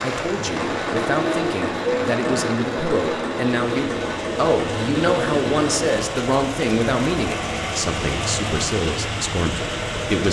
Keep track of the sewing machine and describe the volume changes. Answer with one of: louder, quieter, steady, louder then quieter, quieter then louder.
quieter.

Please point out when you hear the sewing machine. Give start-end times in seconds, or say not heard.
0.2-10.2.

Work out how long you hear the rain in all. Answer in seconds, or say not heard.
10 s.